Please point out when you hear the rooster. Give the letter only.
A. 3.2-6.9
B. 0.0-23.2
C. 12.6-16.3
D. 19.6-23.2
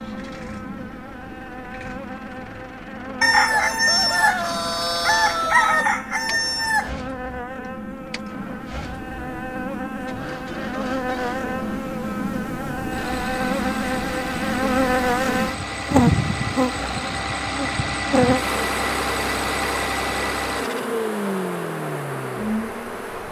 A.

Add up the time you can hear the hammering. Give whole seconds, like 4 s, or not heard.
not heard.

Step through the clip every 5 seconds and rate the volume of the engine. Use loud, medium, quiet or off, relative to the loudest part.
quiet, quiet, medium, loud, loud.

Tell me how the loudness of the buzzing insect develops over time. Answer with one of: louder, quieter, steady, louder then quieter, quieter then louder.
louder then quieter.